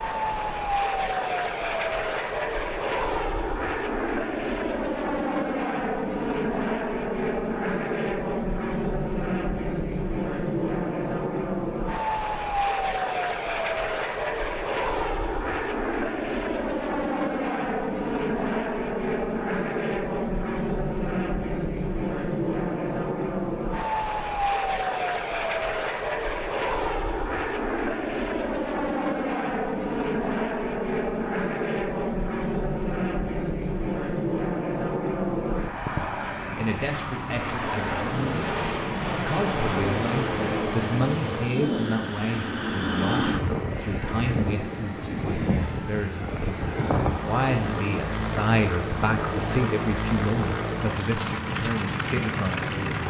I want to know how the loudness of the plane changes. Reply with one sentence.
The loudness of the plane stays about the same.